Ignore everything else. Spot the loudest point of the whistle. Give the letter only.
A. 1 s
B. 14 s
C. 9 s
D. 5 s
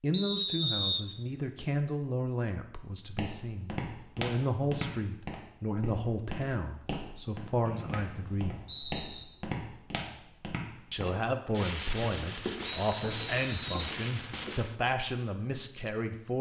A.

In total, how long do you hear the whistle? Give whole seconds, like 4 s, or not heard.
4 s.